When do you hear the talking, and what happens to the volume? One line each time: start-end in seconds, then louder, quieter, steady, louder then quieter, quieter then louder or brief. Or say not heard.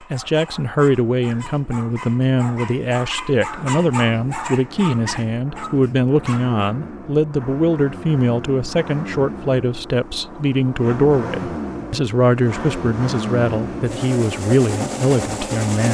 0.1-15.8 steady.